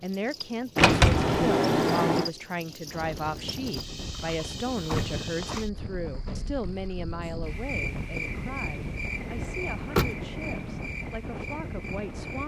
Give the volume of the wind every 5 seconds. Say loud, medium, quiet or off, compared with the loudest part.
medium, loud, loud.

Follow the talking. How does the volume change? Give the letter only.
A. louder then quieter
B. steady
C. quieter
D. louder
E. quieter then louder
C.